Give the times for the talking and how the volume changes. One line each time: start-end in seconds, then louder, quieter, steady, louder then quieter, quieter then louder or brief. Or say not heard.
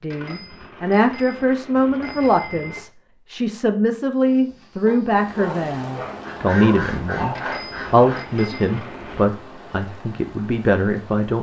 0.0-11.3 steady.